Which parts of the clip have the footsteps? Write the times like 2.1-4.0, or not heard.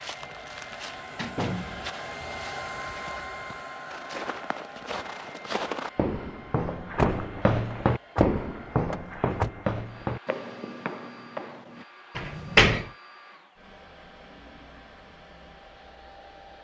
0.0-11.8.